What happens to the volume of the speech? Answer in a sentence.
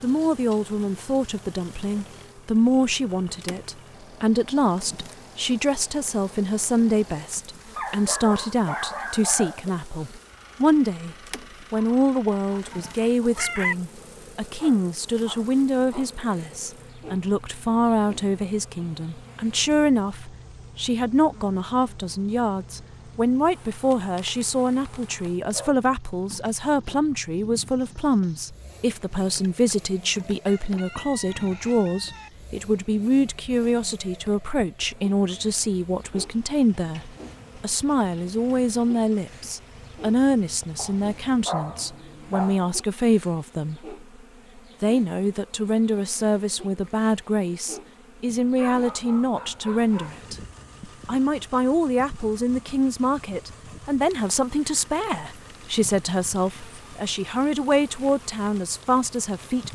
The volume of the speech stays about the same.